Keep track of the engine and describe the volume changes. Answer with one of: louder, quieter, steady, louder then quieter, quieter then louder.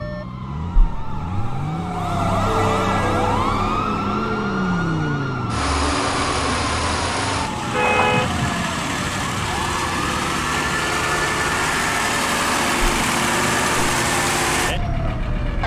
louder.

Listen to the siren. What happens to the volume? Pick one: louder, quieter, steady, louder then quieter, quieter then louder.
quieter.